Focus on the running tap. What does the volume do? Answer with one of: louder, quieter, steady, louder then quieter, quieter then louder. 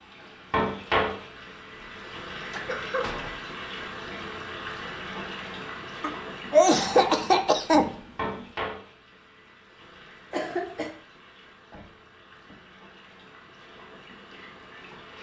quieter.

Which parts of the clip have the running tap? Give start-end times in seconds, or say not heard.
0.0-15.1.